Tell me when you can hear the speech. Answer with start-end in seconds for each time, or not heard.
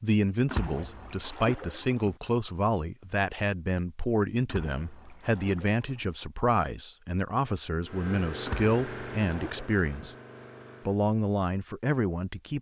0.0-10.1, 10.8-12.5.